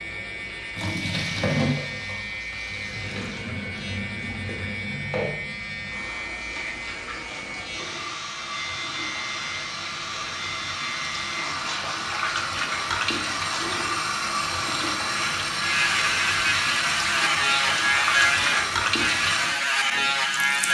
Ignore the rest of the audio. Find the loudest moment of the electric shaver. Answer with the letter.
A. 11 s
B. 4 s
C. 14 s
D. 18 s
D.